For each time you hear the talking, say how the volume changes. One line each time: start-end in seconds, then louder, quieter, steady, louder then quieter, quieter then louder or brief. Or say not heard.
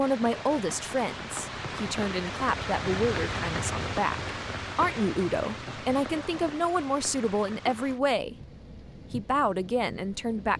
0.0-8.3 steady
9.1-10.5 brief.